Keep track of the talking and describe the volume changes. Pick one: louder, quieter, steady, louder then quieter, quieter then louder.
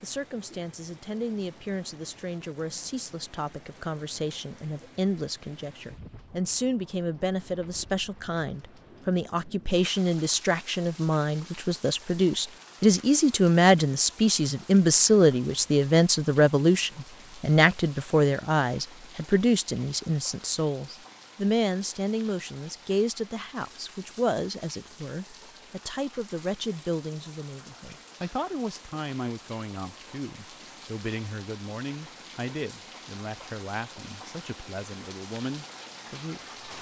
louder then quieter.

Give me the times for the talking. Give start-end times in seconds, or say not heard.
0.0-36.5.